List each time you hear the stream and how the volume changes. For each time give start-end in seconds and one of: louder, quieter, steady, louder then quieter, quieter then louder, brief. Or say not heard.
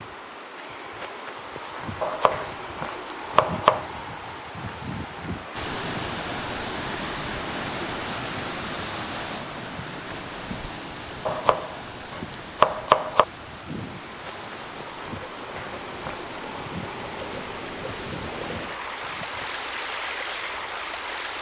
5.5-21.3 quieter then louder.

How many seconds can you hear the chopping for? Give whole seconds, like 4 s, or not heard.
4 s.